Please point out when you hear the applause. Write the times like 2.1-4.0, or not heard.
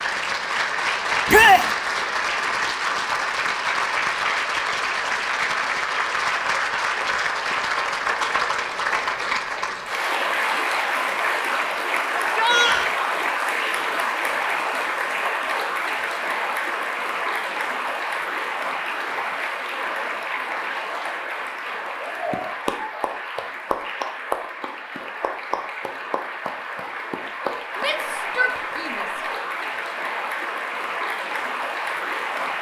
0.0-32.5.